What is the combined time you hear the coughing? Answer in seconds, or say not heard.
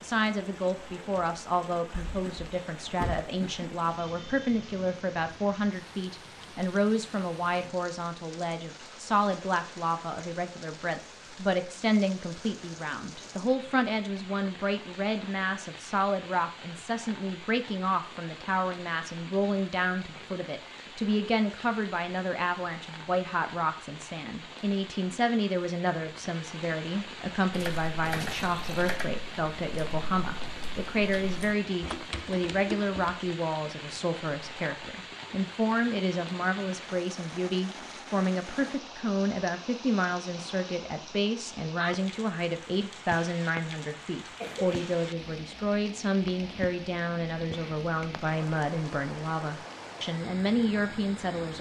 2 s.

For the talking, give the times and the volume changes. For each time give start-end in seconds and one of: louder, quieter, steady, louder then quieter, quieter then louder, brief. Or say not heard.
0.0-51.5 steady.